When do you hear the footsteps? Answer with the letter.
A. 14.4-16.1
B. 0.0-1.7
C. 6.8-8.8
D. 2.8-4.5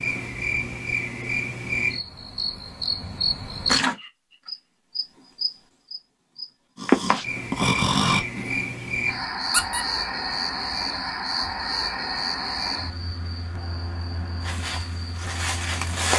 A.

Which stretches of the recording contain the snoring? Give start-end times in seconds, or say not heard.
6.8-8.8.